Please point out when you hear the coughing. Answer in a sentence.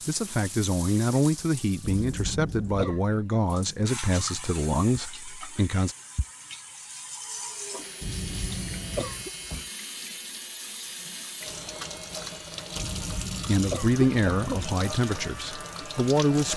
You can hear the coughing from 1.8 to 3.0 s, from 8.0 to 9.3 s and from 12.8 to 14.8 s.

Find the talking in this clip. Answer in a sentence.
You can hear the talking from 0.1 to 6.0 s and from 13.4 to 16.5 s.